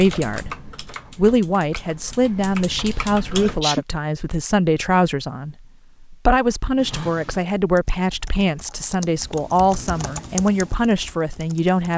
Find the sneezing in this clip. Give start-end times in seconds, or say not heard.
2.9-3.9, 6.8-7.5.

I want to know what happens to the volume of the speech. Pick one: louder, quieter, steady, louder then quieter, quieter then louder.
steady.